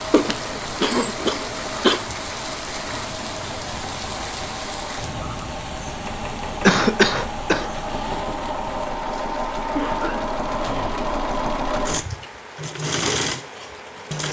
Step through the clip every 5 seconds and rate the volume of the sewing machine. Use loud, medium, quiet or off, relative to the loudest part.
medium, loud, loud.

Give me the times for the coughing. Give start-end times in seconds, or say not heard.
0.1-2.0, 6.7-7.7, 9.7-11.0.